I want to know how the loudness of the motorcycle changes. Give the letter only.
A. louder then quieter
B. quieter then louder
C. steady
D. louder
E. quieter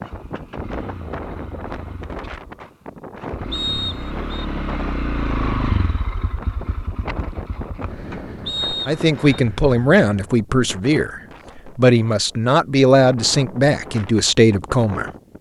A.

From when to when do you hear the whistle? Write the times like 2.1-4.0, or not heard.
3.5-4.5, 8.4-9.4.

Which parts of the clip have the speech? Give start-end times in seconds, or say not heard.
8.8-15.1.